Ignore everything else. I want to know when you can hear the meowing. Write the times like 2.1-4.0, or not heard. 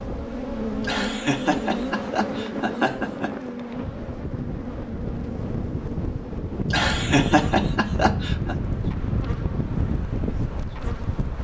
not heard.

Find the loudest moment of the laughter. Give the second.
7 s.